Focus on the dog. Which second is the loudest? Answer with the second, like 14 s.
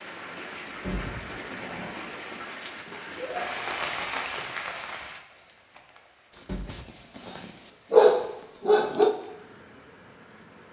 8 s.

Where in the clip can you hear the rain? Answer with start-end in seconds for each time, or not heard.
0.0-10.6.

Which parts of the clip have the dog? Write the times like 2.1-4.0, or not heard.
0.7-2.3, 6.3-9.1.